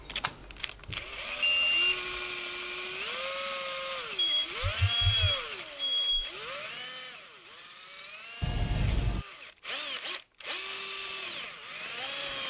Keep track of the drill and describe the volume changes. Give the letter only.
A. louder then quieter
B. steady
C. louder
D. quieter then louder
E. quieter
D.